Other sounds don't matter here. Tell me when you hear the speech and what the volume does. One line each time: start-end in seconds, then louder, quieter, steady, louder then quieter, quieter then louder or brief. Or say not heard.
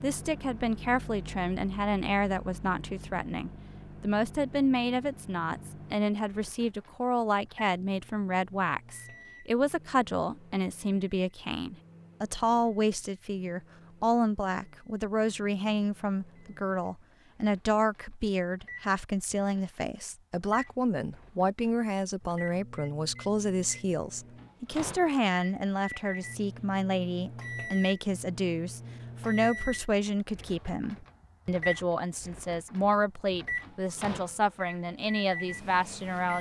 0.0-36.3 steady.